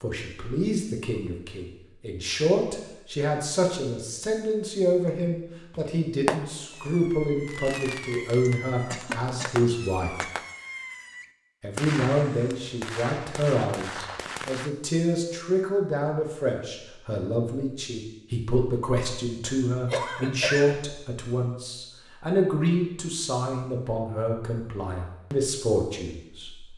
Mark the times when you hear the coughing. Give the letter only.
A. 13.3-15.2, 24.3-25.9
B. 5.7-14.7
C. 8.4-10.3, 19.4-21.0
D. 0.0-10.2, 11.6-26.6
C.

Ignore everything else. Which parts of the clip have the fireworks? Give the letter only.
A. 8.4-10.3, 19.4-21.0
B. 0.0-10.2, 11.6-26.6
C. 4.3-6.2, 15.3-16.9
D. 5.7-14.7
D.